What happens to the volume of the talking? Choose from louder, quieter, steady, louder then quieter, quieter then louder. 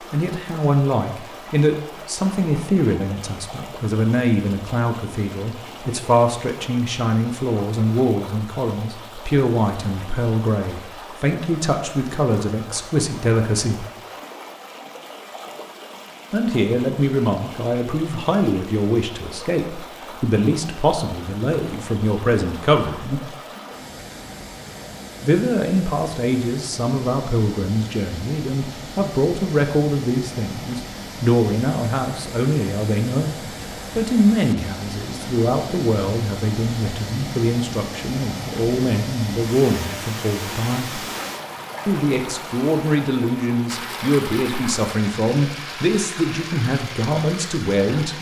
steady.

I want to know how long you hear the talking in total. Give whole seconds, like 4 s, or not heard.
43 s.